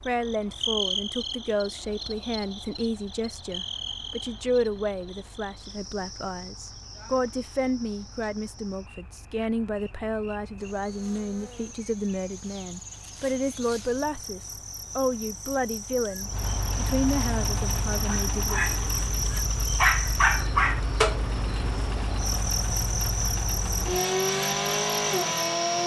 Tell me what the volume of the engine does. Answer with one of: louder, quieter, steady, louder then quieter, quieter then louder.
louder.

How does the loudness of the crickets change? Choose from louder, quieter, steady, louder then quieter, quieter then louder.
quieter then louder.